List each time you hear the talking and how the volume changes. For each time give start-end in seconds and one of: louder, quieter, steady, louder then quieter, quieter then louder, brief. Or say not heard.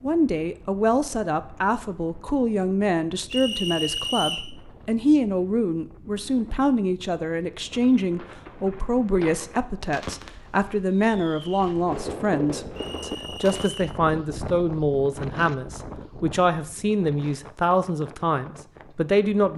0.0-19.5 steady.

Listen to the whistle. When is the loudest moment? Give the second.
4 s.